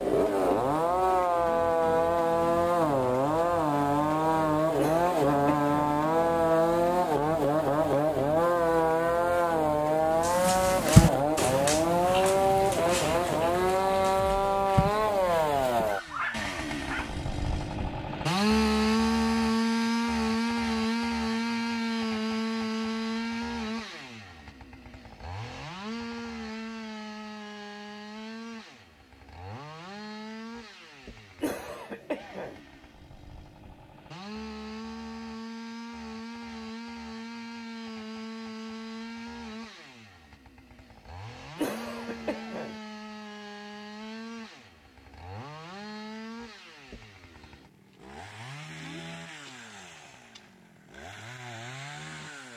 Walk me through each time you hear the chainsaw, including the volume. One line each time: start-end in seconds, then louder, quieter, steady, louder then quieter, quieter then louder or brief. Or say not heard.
0.0-52.5 quieter.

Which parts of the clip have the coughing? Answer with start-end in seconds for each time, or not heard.
4.8-5.7, 31.4-32.6, 41.5-42.8.